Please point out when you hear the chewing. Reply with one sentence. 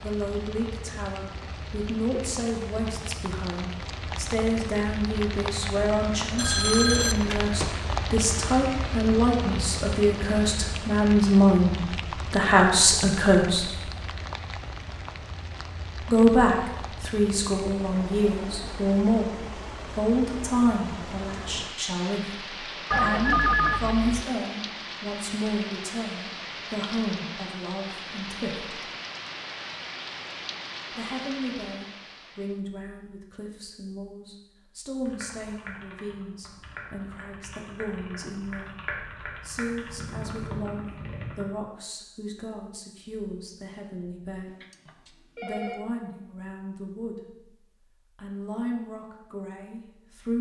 You can't hear the chewing here.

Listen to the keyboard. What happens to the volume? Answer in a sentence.
The volume of the keyboard goes up.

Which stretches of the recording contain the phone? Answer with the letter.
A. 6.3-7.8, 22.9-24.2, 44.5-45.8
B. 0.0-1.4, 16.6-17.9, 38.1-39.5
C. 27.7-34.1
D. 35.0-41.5
A.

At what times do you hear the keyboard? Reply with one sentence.
You can hear the keyboard from 35.0 to 41.5 s.